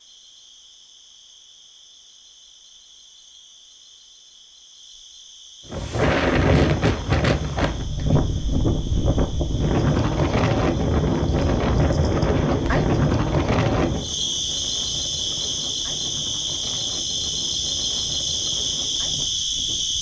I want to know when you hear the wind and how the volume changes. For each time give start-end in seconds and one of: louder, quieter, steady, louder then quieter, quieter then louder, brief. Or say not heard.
5.7-19.9 quieter.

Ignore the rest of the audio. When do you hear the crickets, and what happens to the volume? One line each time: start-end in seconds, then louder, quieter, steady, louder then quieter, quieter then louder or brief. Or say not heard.
0.0-19.9 louder.